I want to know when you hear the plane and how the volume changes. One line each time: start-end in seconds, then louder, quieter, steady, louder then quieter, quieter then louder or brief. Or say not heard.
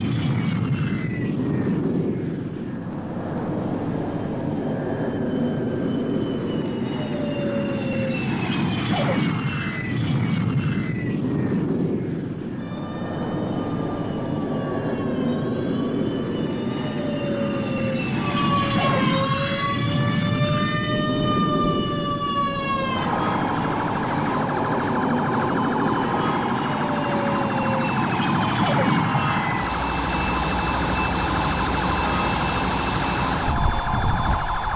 0.0-34.7 steady.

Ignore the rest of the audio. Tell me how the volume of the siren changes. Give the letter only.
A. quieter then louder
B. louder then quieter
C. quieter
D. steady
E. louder
E.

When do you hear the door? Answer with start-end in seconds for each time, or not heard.
not heard.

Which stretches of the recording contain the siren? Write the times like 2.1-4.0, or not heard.
12.6-34.7.